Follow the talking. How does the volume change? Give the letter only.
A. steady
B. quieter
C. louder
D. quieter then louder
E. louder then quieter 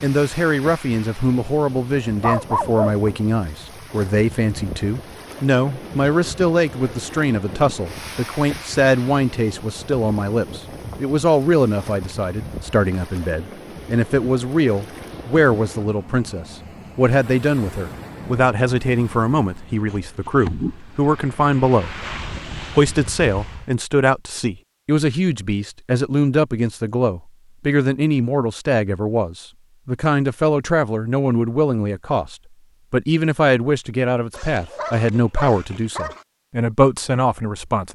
A.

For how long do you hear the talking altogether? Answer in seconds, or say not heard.
38 s.